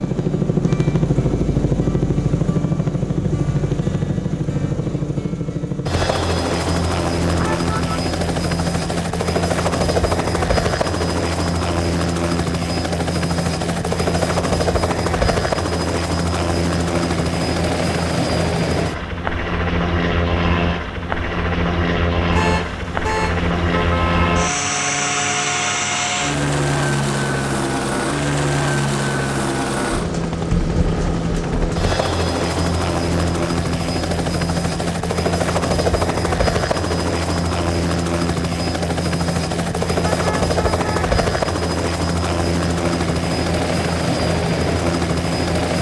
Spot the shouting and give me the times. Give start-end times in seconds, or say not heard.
not heard.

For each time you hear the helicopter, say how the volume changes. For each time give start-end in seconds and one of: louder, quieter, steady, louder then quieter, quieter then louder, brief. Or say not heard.
0.0-45.7 steady.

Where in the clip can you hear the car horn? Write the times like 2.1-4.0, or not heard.
7.2-8.0, 22.3-24.5, 40.0-41.0.